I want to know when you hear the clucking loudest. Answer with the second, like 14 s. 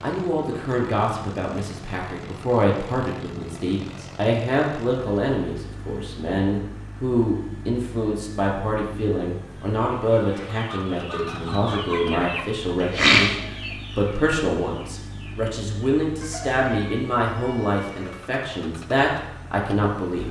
13 s.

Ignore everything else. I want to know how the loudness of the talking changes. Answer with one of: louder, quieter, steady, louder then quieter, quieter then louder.
steady.